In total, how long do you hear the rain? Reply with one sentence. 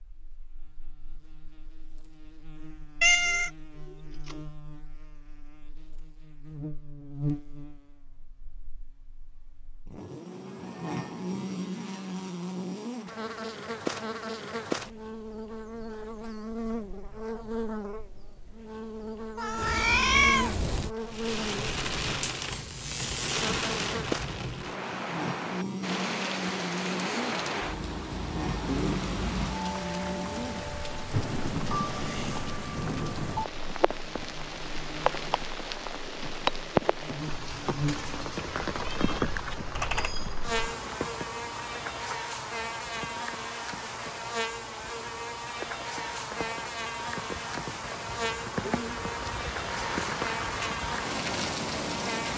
The rain can be heard for 33 seconds in total.